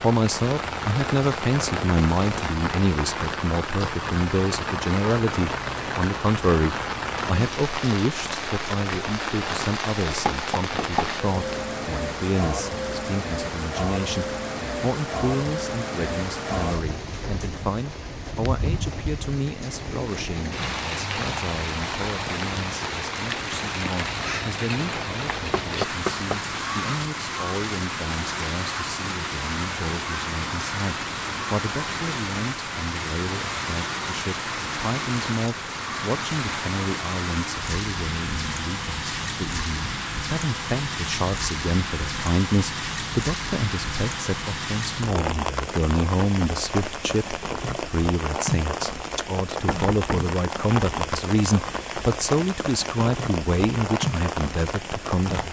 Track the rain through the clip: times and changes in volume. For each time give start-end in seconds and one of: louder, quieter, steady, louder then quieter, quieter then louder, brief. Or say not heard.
0.0-55.4 steady.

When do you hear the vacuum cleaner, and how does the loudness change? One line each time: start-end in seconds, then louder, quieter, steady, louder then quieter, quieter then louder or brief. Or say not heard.
not heard.